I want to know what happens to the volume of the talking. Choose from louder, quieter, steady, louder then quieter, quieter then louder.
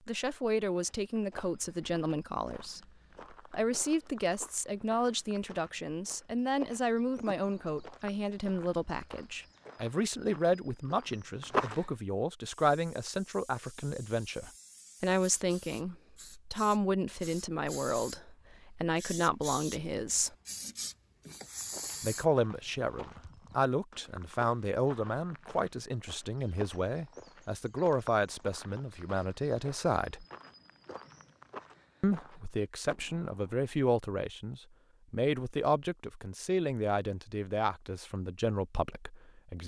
steady.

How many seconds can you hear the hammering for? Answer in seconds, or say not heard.
not heard.